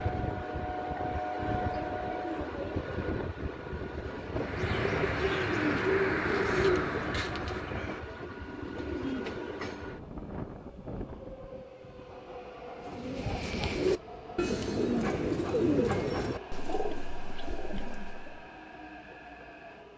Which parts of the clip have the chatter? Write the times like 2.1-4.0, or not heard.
not heard.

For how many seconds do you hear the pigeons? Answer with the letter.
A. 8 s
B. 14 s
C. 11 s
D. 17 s
C.